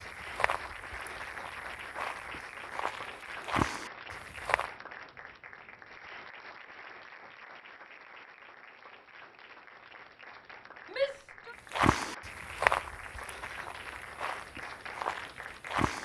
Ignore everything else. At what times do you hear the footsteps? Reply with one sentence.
The footsteps can be heard from 0.0 to 4.7 s and from 11.7 to 16.0 s.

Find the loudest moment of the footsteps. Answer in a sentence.
The volume of the footsteps peaks at 13 seconds.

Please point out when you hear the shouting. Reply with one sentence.
You can hear the shouting from 10.9 to 11.6 s.